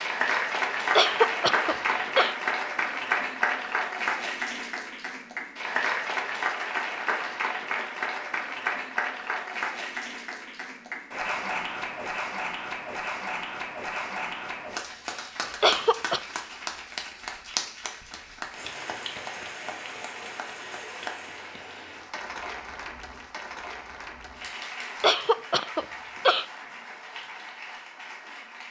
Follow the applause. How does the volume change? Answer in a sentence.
The loudness of the applause goes down.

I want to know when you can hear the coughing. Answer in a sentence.
The coughing can be heard from 0.9 to 2.4 s, from 15.6 to 16.2 s and from 25.0 to 26.4 s.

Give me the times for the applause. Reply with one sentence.
The applause can be heard from 0.0 to 28.6 s.